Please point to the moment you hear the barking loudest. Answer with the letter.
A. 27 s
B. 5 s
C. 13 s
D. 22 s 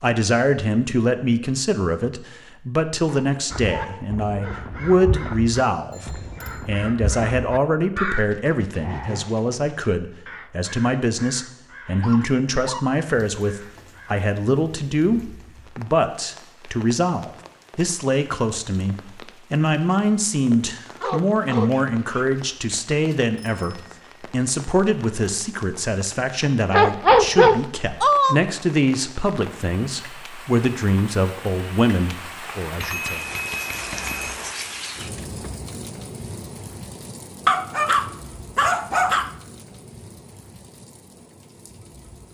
A.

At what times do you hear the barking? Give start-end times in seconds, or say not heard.
3.0-5.3, 12.0-13.4, 21.0-22.8, 26.7-28.4, 37.5-39.3.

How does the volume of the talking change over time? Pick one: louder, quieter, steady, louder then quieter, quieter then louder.
steady.